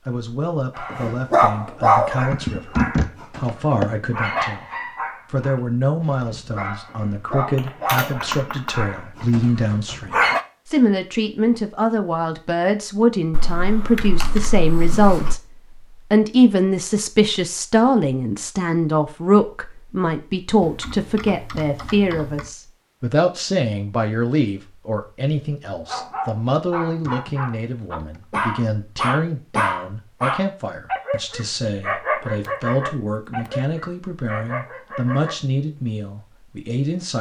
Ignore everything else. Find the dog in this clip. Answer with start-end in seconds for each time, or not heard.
0.8-10.4, 25.9-35.4.